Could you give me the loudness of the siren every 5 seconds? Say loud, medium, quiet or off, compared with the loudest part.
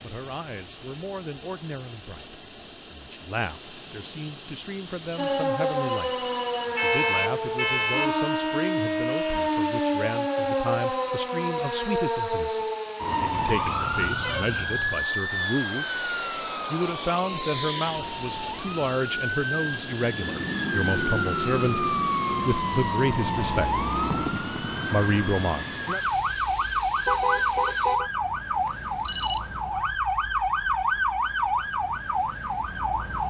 off, loud, loud, medium, loud, loud, loud.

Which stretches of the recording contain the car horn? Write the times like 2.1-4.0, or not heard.
6.8-8.2, 13.3-15.0, 27.1-28.1.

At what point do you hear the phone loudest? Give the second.
29 s.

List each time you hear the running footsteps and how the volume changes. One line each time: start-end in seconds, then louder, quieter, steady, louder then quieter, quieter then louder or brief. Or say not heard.
not heard.